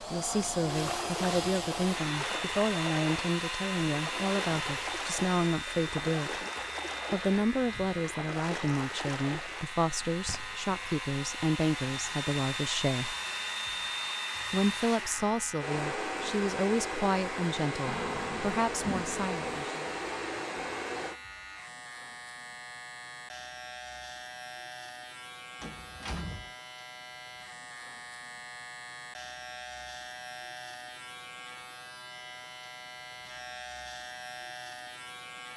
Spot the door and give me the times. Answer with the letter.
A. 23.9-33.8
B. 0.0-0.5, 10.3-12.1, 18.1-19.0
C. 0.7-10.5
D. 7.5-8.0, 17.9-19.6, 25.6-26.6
D.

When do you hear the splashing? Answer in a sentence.
The splashing can be heard from 0.7 to 10.5 s.